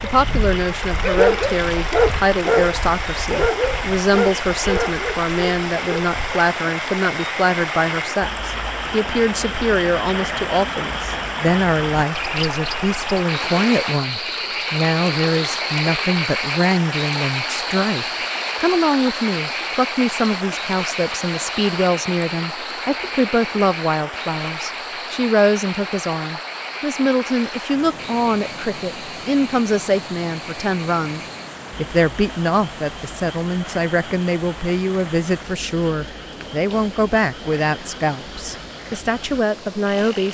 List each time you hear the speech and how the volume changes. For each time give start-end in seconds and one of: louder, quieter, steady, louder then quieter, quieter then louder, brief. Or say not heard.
0.0-40.2 steady.